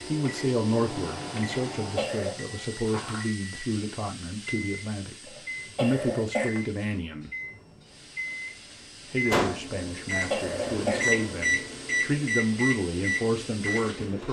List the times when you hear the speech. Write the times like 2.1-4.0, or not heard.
0.1-7.3, 9.1-14.2.